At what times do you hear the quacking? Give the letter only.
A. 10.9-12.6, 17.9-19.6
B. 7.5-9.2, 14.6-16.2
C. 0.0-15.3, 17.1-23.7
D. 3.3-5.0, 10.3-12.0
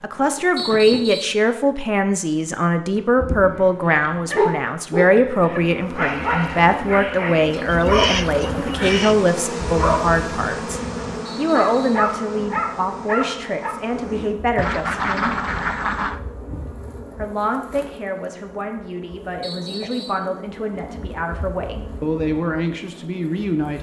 B.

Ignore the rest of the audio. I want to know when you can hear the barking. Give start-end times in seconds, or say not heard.
3.9-13.8.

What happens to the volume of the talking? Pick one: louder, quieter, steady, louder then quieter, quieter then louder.
quieter.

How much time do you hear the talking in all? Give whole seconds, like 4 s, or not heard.
22 s.